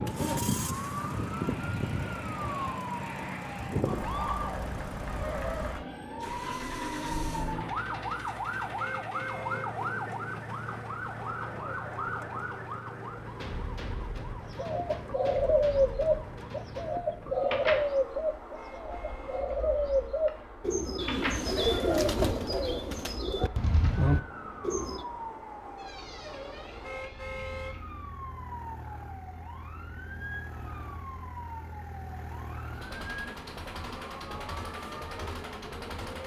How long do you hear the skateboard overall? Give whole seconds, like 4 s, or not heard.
not heard.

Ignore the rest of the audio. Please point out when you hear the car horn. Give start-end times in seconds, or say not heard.
8.8-9.7, 18.6-19.5, 26.8-27.8.